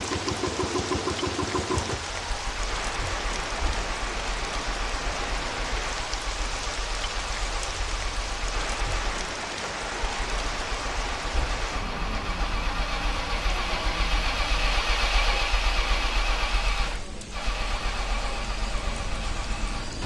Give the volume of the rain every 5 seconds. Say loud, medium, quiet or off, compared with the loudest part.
loud, loud, loud, medium.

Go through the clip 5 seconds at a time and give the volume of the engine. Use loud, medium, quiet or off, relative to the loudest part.
loud, medium, loud, loud.